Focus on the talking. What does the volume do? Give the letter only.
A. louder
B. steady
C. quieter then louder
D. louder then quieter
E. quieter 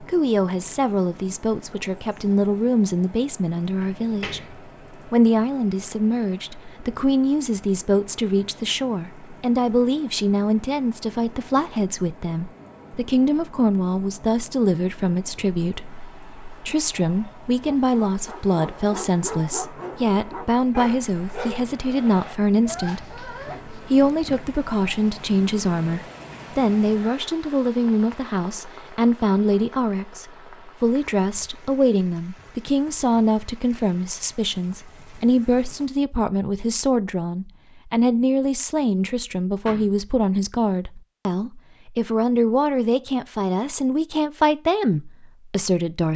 B.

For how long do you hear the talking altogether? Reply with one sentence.
You can hear the talking for 46 seconds altogether.